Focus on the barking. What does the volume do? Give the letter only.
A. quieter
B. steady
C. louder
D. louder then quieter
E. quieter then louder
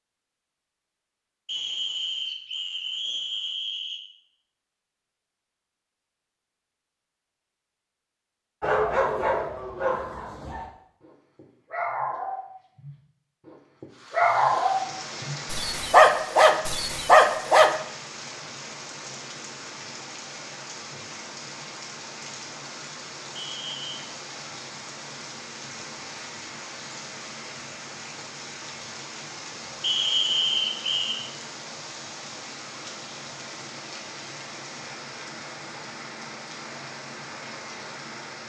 E.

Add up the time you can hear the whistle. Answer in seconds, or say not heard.
5 s.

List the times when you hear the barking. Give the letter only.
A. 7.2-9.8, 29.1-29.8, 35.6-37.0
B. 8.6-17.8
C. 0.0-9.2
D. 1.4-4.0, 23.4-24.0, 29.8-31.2
B.